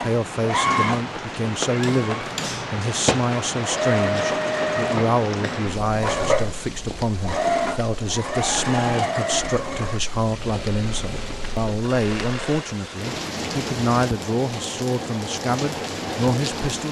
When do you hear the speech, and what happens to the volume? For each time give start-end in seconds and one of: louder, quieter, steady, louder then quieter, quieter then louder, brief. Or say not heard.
0.0-16.8 steady.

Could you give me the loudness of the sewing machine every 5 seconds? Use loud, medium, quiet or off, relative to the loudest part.
loud, loud, medium, medium.